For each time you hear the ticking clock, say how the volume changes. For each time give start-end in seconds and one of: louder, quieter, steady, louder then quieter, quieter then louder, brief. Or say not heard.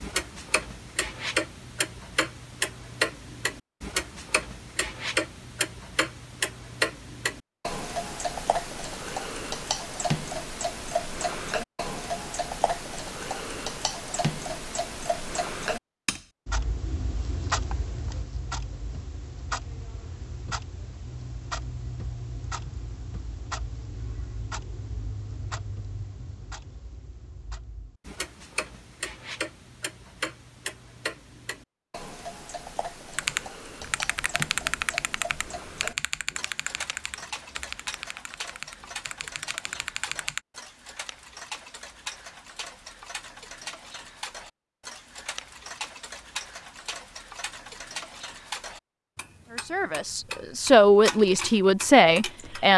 0.0-52.7 quieter.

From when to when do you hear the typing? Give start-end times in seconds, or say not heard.
33.1-40.4.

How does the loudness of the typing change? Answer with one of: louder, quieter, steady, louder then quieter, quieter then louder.
quieter.